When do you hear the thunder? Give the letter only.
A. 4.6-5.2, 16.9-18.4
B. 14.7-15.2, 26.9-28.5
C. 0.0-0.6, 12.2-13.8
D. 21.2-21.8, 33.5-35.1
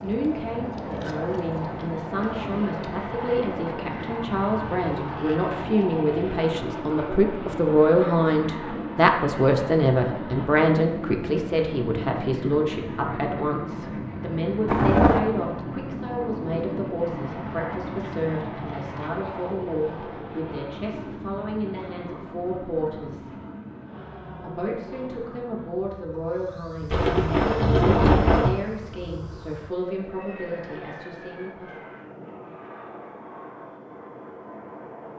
B.